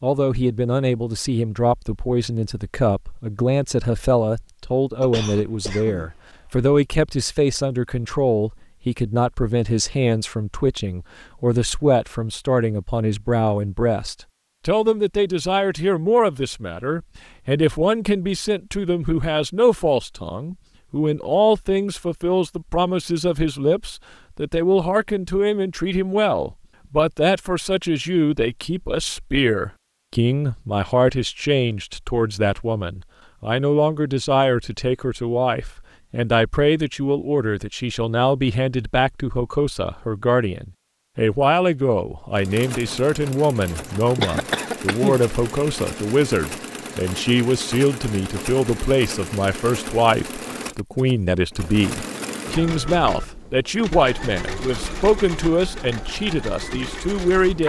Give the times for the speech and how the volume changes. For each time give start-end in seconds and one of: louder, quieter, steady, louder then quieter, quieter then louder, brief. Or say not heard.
0.0-57.6 steady.